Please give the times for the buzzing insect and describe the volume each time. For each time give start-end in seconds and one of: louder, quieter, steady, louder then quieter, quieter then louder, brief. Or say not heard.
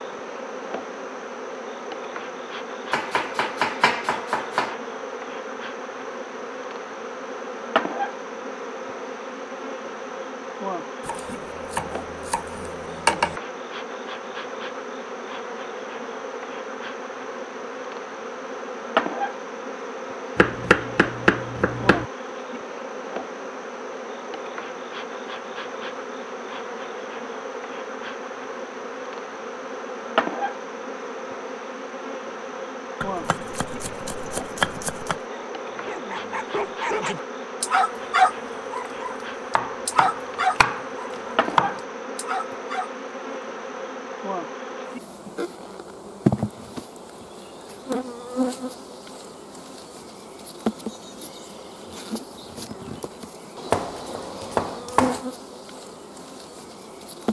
0.0-57.2 steady.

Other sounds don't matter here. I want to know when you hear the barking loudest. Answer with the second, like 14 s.
38 s.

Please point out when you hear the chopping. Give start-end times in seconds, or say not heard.
2.9-4.8, 11.1-13.3, 20.4-22.1, 33.0-35.2, 39.5-41.8, 53.7-55.2.